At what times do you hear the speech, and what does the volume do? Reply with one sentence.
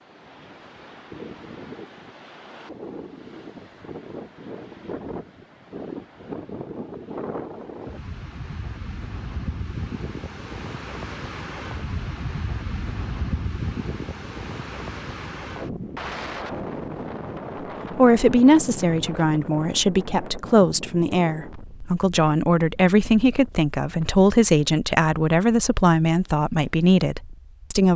The speech can be heard from 17.9 to 27.9 s, at a steady volume.